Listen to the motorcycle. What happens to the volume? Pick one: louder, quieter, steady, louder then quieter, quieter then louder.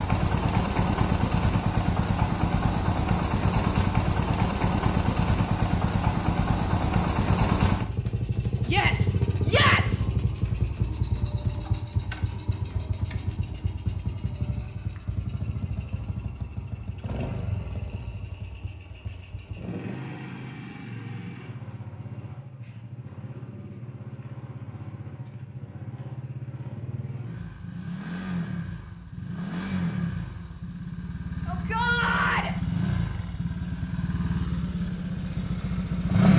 quieter then louder.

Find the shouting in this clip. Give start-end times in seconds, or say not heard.
8.7-10.1, 31.4-32.5.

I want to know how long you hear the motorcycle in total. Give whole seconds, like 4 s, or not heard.
36 s.